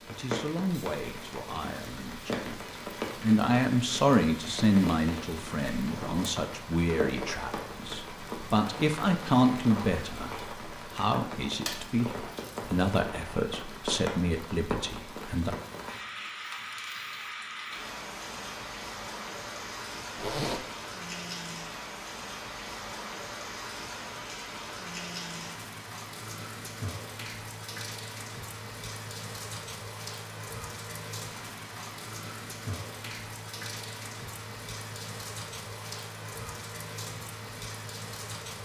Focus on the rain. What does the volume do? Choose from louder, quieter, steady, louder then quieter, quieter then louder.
steady.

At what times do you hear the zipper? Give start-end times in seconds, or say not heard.
5.8-6.3, 20.1-20.6.